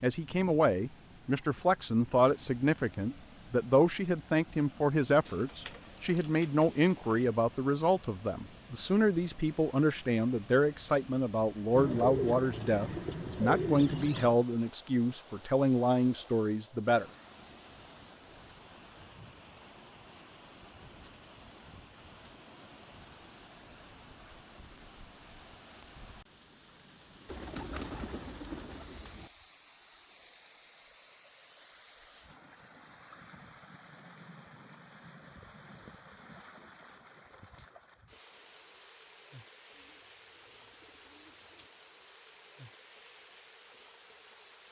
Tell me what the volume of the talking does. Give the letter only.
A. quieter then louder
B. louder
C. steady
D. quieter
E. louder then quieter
C.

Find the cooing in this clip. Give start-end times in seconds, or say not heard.
5.2-7.2, 11.8-14.3, 27.2-29.3, 39.8-41.7.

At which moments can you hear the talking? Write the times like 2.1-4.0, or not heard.
0.0-17.1.